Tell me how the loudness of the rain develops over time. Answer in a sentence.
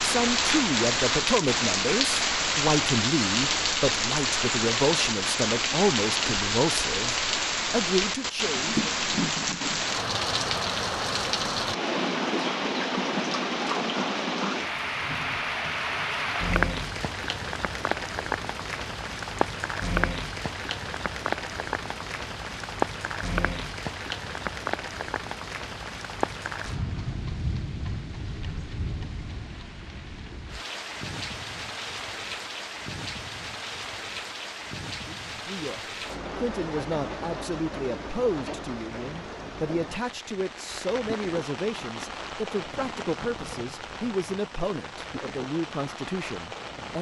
The loudness of the rain goes down.